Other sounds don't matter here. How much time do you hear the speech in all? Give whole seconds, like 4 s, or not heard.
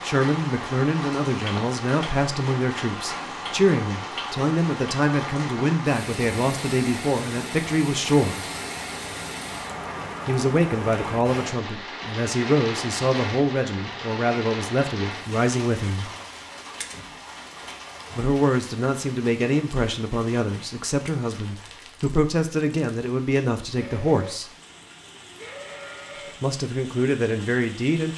22 s.